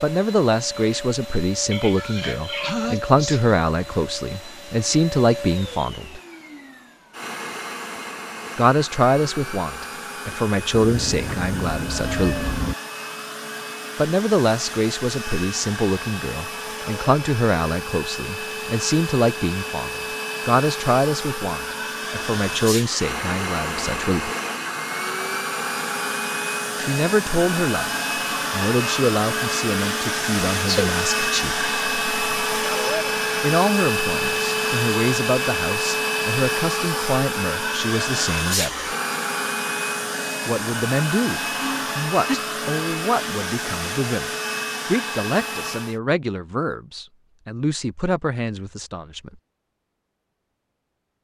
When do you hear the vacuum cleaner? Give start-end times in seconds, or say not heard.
0.0-46.0.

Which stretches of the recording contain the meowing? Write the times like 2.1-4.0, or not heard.
10.8-12.8.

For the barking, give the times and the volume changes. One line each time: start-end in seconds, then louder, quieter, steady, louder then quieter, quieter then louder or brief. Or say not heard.
not heard.